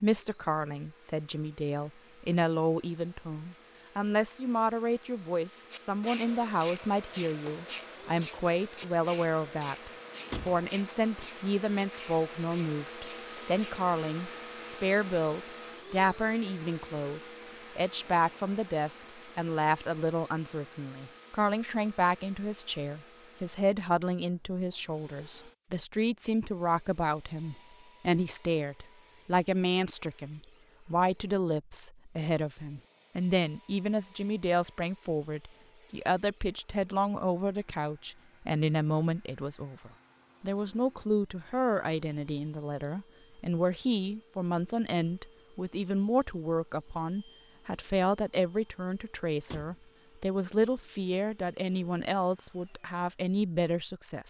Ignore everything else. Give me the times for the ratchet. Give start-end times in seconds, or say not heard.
5.7-13.8.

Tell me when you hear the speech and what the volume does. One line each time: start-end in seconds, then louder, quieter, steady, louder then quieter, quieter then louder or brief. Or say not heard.
0.0-54.2 steady.